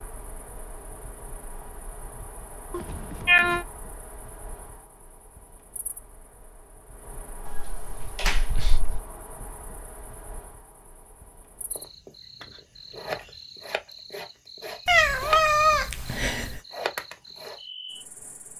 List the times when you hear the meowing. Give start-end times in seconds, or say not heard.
2.7-3.6, 7.5-9.0, 14.8-16.6.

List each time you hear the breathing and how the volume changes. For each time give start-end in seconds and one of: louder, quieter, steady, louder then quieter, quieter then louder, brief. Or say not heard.
not heard.